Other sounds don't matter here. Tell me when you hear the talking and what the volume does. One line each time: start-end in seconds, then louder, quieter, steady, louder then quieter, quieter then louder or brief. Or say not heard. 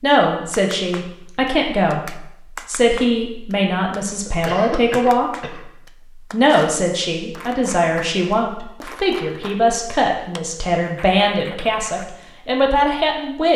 0.0-5.3 steady
6.3-13.5 steady.